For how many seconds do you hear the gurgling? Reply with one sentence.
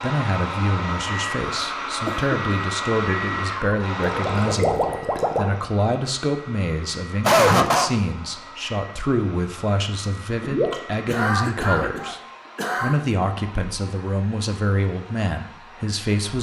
The gurgling can be heard for 2 seconds in total.